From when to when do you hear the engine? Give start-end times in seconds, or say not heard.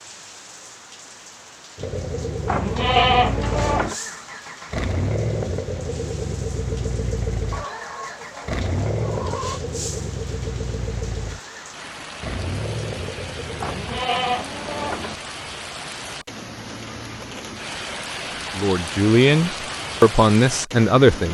1.8-14.1.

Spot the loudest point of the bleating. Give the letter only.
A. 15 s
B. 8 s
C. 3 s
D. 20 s
C.